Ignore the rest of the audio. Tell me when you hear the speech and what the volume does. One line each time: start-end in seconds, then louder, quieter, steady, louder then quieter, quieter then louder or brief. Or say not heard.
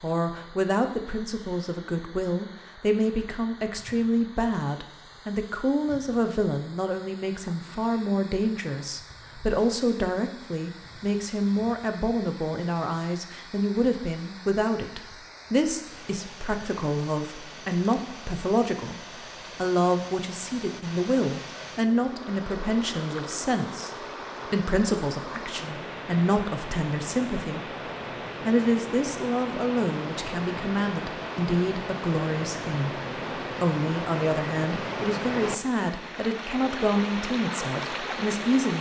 0.0-27.6 steady
28.4-38.7 steady.